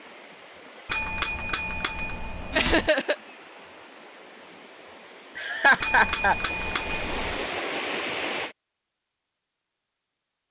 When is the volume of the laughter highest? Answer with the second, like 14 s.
6 s.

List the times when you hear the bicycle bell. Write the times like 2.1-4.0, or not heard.
0.8-2.9, 5.8-7.5.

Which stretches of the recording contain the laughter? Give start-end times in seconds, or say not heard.
2.5-3.1, 5.3-6.3.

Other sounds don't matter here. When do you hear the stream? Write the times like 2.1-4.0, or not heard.
0.0-8.6.